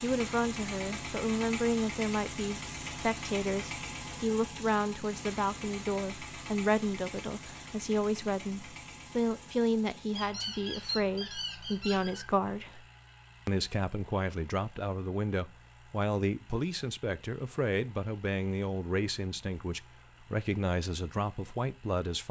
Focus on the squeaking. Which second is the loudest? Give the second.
11 s.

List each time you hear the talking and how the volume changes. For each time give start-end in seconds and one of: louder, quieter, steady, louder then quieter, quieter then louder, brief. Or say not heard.
0.0-12.8 steady
13.4-22.2 steady.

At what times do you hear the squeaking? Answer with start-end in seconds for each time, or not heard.
10.2-12.2.